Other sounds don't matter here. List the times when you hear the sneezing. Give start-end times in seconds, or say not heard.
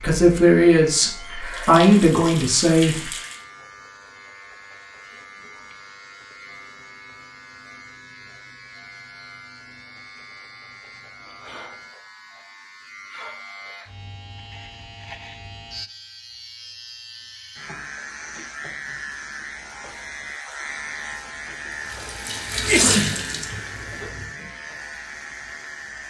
22.6-23.1.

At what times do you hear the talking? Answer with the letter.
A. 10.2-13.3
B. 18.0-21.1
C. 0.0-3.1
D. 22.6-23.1
C.